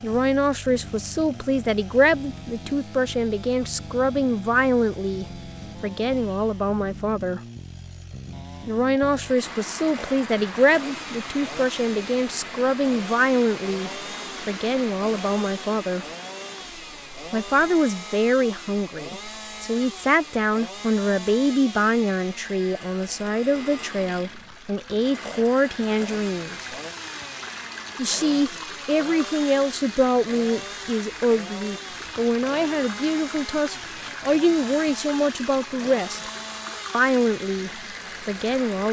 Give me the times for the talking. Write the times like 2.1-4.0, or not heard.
0.0-7.4, 8.7-16.1, 17.3-26.6, 27.9-36.3, 36.9-38.8.